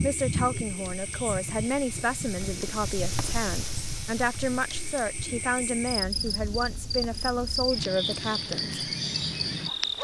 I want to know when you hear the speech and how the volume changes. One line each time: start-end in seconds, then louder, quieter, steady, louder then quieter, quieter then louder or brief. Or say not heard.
0.0-8.8 steady.